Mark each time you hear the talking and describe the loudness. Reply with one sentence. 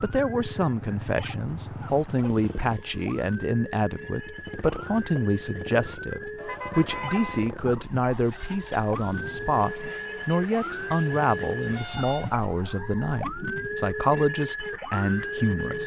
You can hear the talking from 0.0 to 15.8 s, at a steady volume.